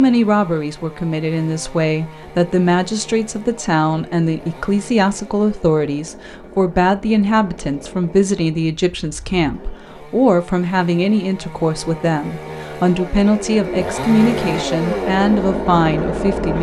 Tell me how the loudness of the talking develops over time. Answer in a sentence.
The volume of the talking stays about the same.